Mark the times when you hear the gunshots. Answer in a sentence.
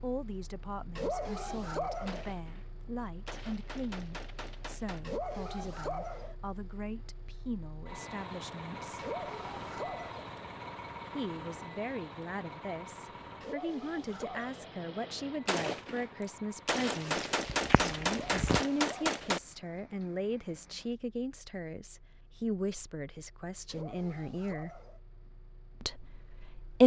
You can hear the gunshots from 2.0 to 5.2 s and from 15.4 to 19.4 s.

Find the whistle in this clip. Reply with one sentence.
The whistle can't be heard in this clip.